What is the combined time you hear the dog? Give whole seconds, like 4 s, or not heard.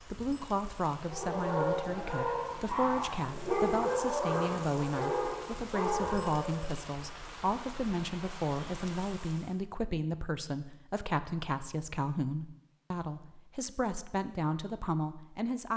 6 s.